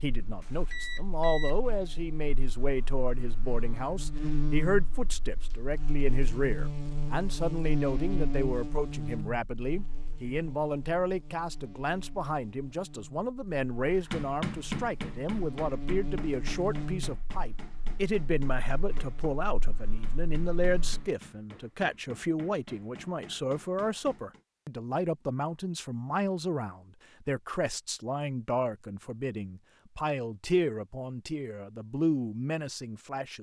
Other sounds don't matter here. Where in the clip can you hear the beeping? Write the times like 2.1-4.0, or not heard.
0.4-1.6.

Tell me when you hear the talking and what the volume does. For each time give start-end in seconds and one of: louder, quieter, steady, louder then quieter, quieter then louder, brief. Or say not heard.
0.0-33.3 steady.